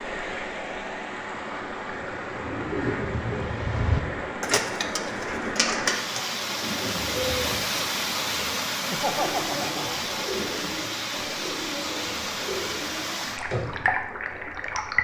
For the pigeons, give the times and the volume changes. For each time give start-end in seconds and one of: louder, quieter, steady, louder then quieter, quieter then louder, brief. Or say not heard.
1.9-13.9 quieter.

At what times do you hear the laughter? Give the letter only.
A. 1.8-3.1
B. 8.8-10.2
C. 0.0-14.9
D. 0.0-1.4
B.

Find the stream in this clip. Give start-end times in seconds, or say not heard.
0.0-14.9.